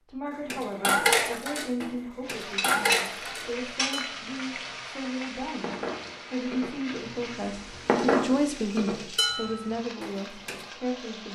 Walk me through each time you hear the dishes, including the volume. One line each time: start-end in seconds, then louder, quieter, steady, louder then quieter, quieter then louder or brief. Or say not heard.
0.5-10.7 quieter then louder.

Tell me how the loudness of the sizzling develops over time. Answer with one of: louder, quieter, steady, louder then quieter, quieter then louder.
quieter.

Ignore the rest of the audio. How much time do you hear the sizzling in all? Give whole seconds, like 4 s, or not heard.
9 s.